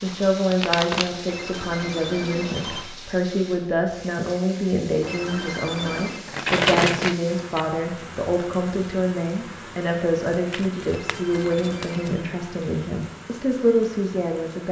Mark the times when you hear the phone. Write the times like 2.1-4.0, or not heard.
1.2-2.9, 5.0-6.2, 10.8-12.2.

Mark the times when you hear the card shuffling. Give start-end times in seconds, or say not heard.
0.1-1.1, 6.2-7.7, 10.3-12.2.